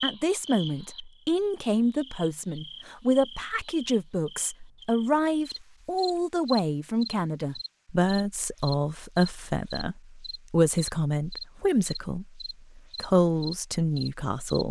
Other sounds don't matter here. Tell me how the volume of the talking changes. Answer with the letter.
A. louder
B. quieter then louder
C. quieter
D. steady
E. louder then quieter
D.